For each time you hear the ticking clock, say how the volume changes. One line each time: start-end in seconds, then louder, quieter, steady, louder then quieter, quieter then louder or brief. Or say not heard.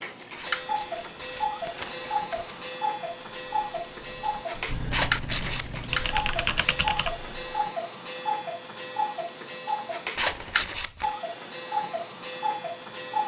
0.0-13.2 steady.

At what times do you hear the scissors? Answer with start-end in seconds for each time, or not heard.
0.3-2.7, 4.9-5.8, 10.2-11.2.